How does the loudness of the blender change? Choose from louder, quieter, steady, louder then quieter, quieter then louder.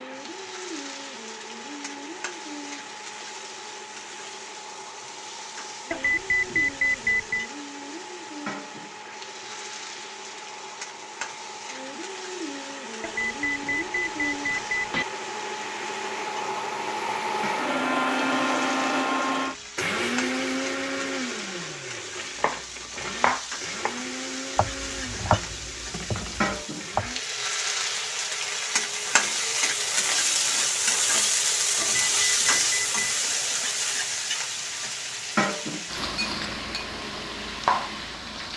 louder then quieter.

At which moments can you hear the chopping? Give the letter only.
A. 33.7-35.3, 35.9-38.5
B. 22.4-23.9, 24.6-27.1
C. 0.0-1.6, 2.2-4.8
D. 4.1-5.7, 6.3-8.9
B.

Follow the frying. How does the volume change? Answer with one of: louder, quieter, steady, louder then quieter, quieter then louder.
louder.